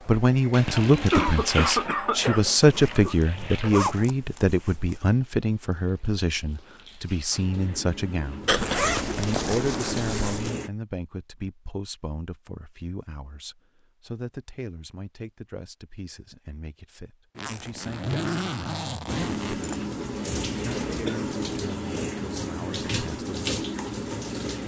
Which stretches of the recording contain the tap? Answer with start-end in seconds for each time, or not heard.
0.0-10.7, 19.1-24.6.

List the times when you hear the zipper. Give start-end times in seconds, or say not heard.
2.6-5.0, 8.5-10.5, 17.4-19.8.